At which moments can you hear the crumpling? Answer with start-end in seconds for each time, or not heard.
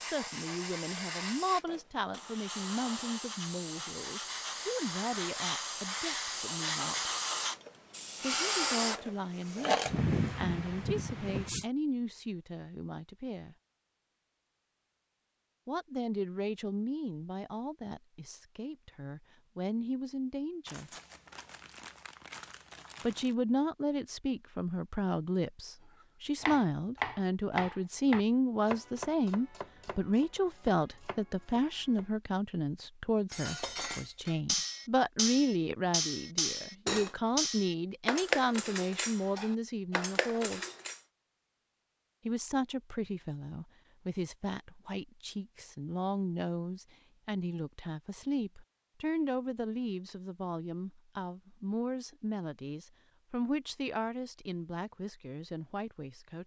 20.6-23.4.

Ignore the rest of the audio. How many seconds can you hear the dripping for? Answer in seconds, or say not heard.
not heard.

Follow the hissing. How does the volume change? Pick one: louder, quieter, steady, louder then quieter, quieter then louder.
louder.